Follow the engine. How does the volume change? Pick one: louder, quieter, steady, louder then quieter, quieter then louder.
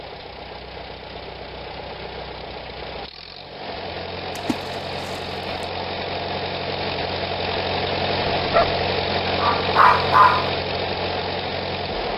louder.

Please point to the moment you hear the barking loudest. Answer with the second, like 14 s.
10 s.